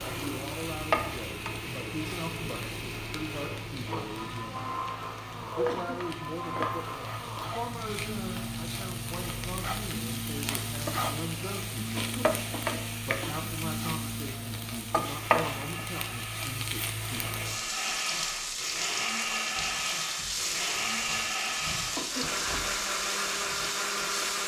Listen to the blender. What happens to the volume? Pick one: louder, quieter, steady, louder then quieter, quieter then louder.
louder.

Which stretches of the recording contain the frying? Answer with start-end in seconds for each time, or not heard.
0.0-24.4.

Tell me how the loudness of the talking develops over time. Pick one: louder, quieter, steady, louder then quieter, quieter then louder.
steady.